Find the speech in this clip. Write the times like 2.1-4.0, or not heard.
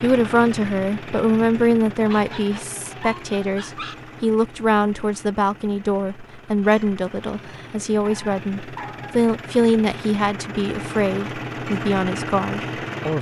0.0-13.1.